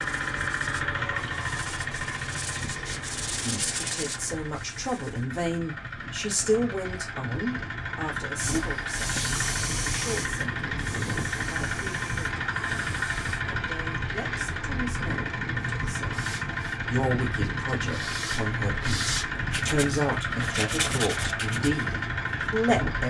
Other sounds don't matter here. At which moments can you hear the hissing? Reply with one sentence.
You can hear the hissing from 8.3 to 13.4 s.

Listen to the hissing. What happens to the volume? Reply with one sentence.
The volume of the hissing goes down.